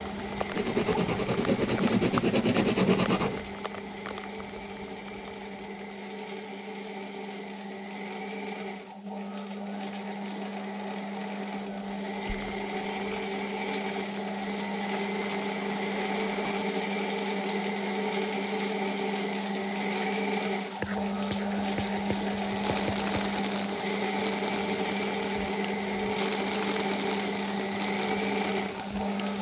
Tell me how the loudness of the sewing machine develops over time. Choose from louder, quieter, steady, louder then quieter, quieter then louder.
louder.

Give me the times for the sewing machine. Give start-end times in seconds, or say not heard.
0.0-29.3.